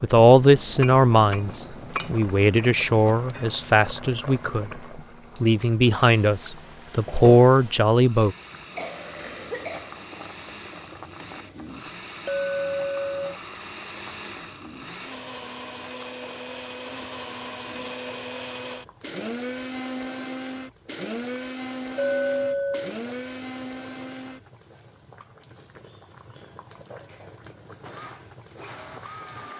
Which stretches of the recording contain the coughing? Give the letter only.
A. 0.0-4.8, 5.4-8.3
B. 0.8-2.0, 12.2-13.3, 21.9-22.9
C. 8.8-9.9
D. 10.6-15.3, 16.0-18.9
C.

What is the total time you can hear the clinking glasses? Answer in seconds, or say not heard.
3 s.